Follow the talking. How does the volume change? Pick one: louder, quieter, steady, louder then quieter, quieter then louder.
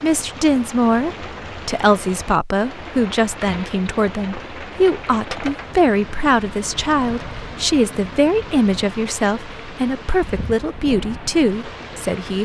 steady.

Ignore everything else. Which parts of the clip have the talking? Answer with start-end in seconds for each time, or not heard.
0.0-12.3.